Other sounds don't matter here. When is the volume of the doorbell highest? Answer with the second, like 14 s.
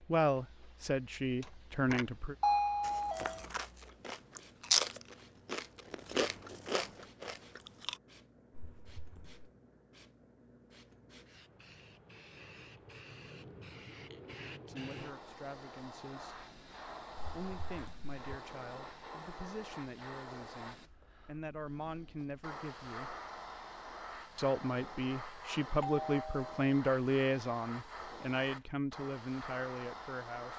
3 s.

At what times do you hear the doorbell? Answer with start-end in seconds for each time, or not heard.
1.4-3.5, 25.8-26.6.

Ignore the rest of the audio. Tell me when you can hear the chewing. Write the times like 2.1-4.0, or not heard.
2.8-8.0.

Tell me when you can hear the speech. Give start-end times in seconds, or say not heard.
0.0-2.4, 14.6-16.4, 17.3-23.1, 24.4-30.5.